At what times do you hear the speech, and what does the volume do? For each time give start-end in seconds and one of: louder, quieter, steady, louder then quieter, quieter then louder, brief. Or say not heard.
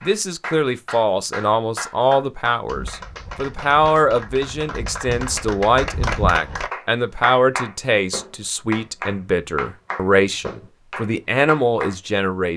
0.0-12.5 steady.